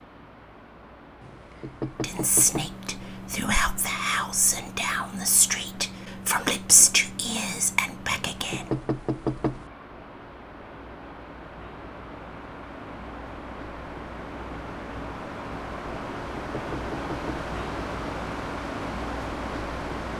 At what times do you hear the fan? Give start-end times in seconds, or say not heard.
0.0-20.1.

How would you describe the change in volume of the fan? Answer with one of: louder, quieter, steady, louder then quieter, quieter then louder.
louder.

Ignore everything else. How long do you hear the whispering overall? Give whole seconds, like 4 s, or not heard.
7 s.